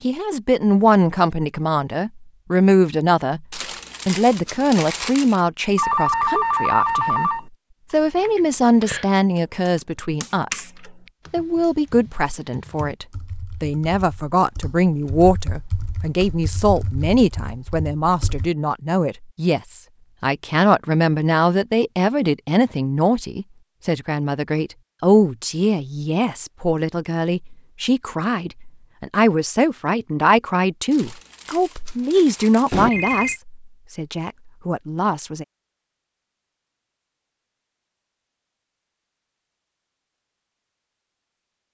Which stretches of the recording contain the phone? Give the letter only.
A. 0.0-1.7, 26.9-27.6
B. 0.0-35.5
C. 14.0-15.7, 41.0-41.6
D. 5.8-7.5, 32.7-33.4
D.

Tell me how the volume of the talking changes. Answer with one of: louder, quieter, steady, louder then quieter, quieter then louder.
steady.